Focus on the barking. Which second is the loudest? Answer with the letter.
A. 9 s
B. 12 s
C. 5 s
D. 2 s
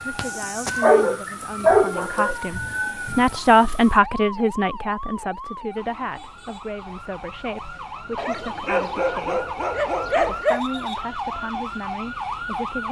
D.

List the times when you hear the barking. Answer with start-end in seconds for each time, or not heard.
0.8-2.4, 8.2-10.6.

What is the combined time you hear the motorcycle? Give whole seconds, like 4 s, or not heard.
not heard.